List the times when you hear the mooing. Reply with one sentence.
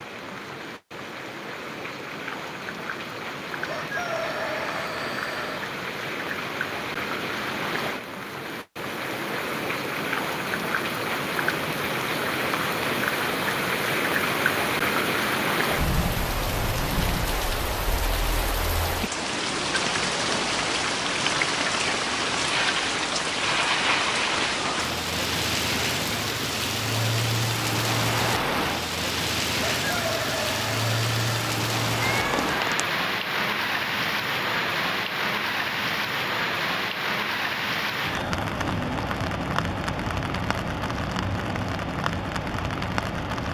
The mooing can't be heard in this clip.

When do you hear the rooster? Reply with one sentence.
You can hear the rooster from 3.6 to 5.6 s and from 29.6 to 31.6 s.